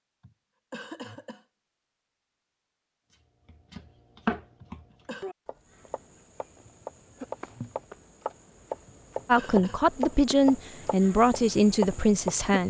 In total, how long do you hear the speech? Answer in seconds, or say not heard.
3 s.